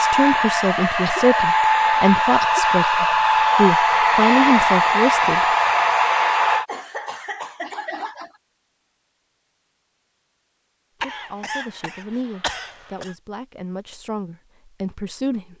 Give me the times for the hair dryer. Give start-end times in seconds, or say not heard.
0.0-6.7.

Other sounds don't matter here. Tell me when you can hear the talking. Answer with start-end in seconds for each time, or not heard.
0.0-5.5, 11.0-15.5.